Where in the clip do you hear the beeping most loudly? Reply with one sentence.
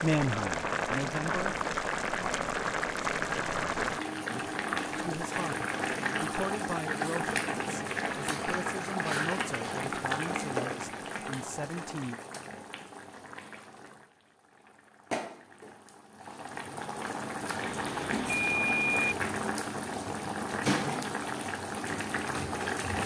The loudest moment of the beeping is at 19 seconds.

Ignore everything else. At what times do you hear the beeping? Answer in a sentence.
You can hear the beeping from 17.6 to 19.1 s.